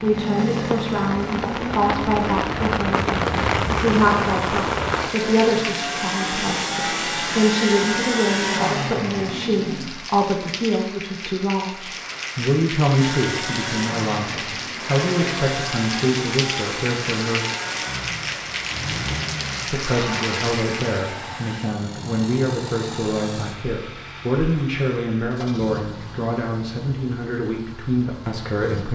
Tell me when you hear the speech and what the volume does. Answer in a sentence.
You can hear the speech from 0.0 to 17.4 s, at a steady volume; and from 19.7 to 28.8 s, at a steady volume.